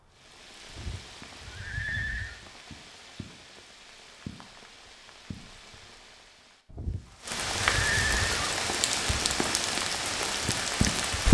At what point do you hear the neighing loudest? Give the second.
8 s.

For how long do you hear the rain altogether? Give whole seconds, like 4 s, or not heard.
11 s.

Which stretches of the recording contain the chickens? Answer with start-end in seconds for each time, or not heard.
not heard.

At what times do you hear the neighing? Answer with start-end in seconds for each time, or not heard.
0.7-2.4, 6.7-8.6.